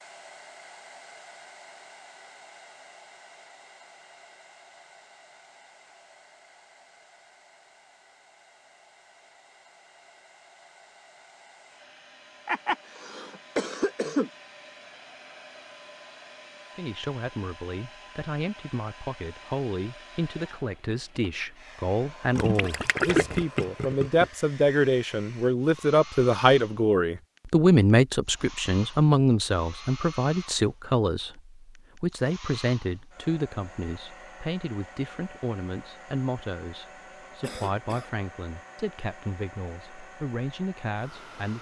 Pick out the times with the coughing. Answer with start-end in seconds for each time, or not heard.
12.4-14.3, 37.4-38.1.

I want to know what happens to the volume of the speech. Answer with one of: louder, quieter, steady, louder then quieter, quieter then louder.
louder then quieter.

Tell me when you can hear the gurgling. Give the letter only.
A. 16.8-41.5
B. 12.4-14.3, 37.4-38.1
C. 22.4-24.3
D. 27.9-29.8
C.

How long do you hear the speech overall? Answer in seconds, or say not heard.
25 s.